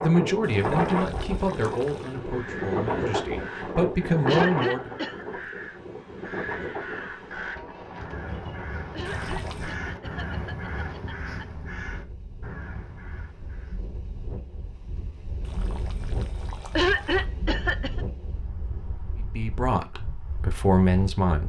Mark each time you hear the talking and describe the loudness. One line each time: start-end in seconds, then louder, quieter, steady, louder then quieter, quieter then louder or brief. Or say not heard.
0.0-4.9 quieter then louder
19.2-21.4 brief.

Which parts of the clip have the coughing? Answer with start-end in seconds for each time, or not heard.
4.2-5.2, 8.9-11.4, 16.8-18.0.